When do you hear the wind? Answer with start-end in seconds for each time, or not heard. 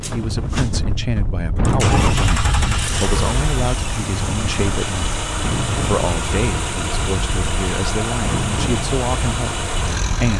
0.0-10.1.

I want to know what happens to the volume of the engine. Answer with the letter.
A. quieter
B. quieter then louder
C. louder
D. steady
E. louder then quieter
D.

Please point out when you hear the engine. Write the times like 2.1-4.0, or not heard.
0.0-10.3.